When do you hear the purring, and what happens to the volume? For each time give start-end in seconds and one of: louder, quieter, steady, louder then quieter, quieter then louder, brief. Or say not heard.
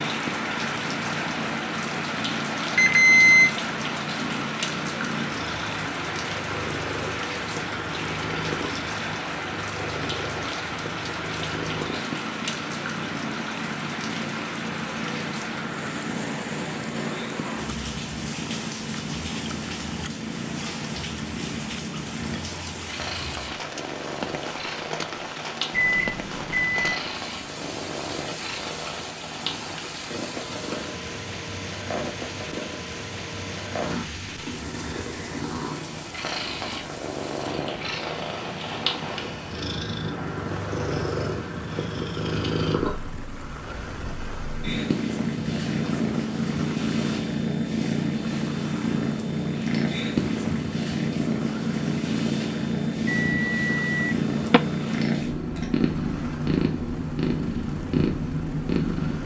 0.0-59.2 louder.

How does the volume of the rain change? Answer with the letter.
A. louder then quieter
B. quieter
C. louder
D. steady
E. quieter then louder
B.